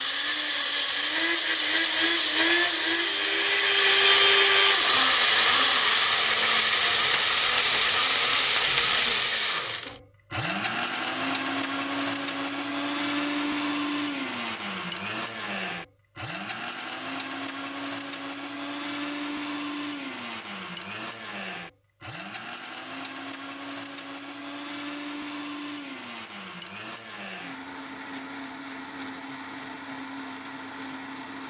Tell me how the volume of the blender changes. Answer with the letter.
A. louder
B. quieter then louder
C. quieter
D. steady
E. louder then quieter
C.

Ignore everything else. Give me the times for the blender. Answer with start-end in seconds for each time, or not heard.
0.0-31.4.